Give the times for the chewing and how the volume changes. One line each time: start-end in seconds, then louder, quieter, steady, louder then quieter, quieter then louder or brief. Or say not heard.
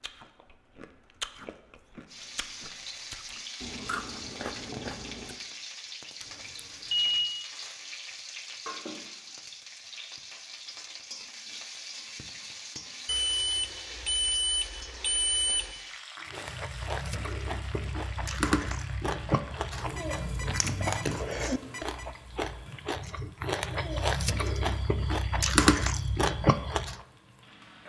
0.0-5.3 quieter then louder
16.3-26.9 louder.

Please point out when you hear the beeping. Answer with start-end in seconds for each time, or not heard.
6.2-7.3, 13.1-15.8, 19.9-22.1.